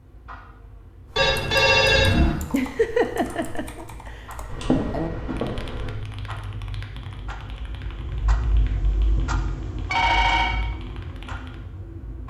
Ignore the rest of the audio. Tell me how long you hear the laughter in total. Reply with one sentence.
You can hear the laughter for 2 seconds altogether.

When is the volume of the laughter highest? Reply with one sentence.
The loudest moment of the laughter is at 3 seconds.